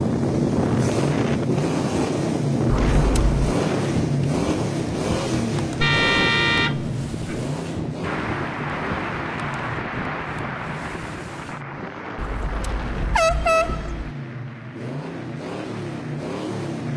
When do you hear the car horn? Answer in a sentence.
The car horn can be heard from 2.7 to 3.5 s, from 5.8 to 7.5 s and from 12.2 to 14.2 s.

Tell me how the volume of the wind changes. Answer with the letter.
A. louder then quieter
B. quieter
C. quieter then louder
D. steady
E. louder
B.